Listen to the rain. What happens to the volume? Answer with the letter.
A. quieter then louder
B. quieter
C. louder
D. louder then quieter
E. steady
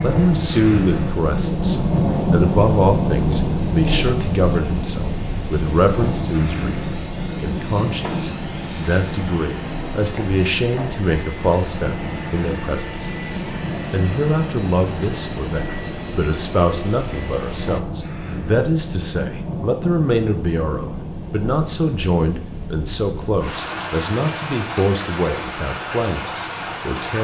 B.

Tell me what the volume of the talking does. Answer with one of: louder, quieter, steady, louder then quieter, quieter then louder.
steady.